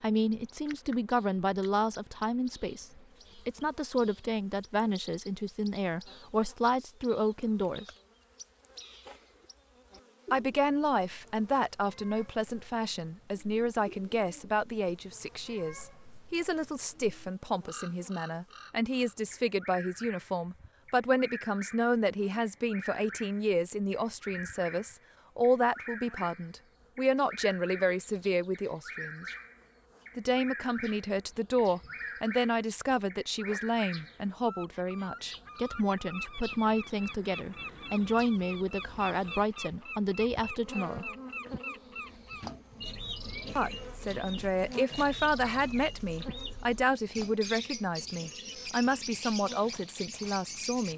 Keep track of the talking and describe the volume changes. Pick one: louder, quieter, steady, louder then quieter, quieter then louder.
steady.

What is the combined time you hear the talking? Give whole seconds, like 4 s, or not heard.
45 s.